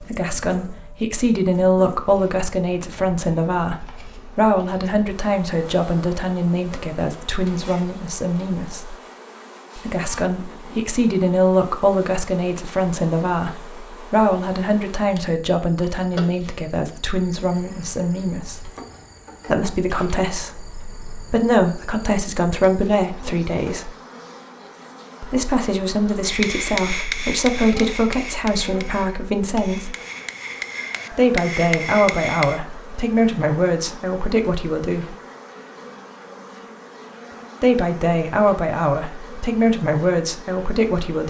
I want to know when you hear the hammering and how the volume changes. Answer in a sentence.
You can hear the hammering from 26.2 to 32.6 s, getting quieter then louder.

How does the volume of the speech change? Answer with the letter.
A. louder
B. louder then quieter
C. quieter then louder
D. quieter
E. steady
E.